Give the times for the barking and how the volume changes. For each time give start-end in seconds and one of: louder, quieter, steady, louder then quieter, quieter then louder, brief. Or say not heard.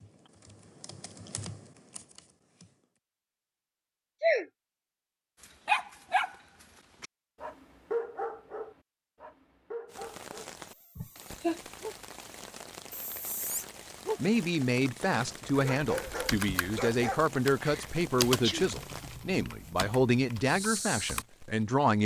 5.4-12.0 quieter
12.9-14.2 brief
15.3-17.2 brief.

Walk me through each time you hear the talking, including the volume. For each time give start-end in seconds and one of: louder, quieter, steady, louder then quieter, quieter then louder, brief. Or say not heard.
14.2-22.0 steady.